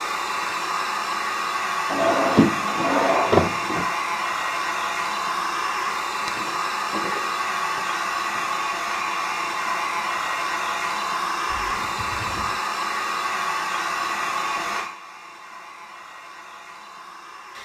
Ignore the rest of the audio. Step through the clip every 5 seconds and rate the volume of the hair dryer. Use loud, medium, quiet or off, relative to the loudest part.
loud, loud, loud, quiet.